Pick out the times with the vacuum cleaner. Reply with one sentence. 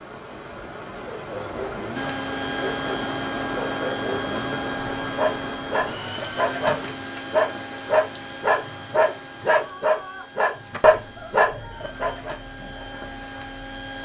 You can hear the vacuum cleaner from 1.9 to 14.0 s.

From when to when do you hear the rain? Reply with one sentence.
The rain can be heard from 0.0 to 14.0 s.